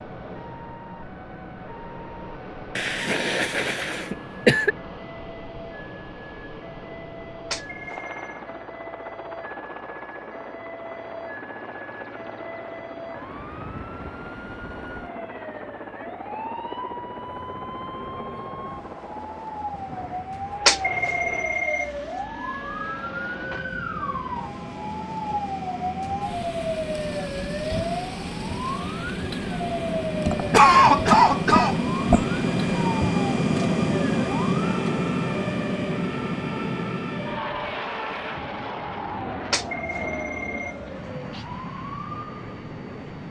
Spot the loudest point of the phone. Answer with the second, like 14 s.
21 s.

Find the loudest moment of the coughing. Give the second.
31 s.